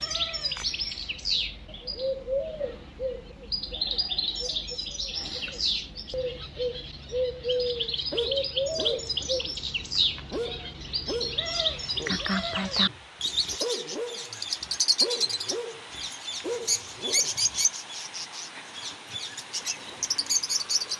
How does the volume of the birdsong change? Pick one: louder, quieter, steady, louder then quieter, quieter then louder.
steady.